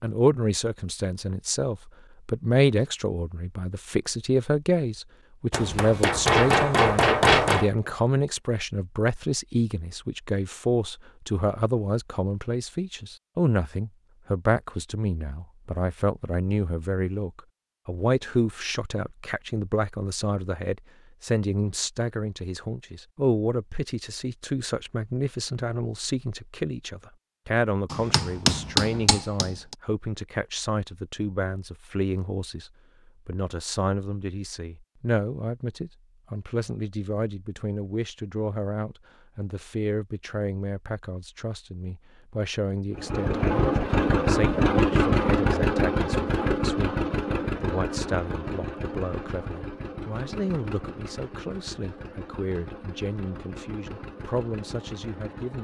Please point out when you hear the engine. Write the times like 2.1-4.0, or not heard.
42.9-55.5.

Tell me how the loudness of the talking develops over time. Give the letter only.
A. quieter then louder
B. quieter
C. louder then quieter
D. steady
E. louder
B.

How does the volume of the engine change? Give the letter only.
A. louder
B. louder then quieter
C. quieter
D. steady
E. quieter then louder
C.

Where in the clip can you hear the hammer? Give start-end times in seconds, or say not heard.
5.5-7.7, 27.9-29.8.